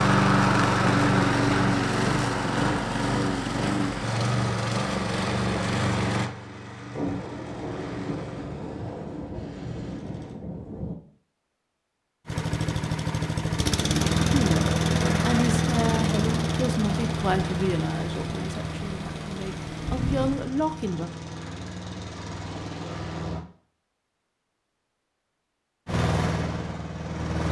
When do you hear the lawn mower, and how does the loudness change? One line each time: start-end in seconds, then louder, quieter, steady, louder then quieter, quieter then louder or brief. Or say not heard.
0.0-10.3 quieter
12.2-23.4 quieter
25.9-27.4 brief.